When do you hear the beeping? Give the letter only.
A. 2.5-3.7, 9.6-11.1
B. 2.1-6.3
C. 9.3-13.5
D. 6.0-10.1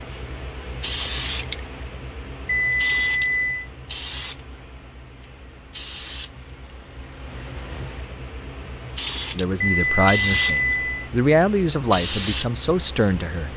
A.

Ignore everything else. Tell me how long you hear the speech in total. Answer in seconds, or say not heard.
4 s.